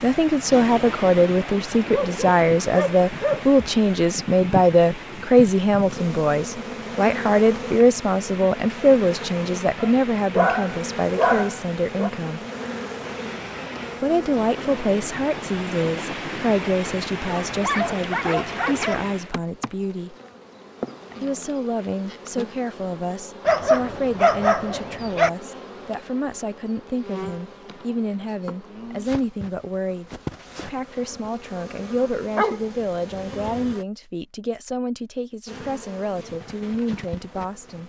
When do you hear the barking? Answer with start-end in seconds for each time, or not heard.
1.9-3.5, 9.8-12.1, 17.4-19.1, 23.4-25.3, 32.4-33.8.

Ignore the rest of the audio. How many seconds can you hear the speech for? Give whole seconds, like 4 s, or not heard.
35 s.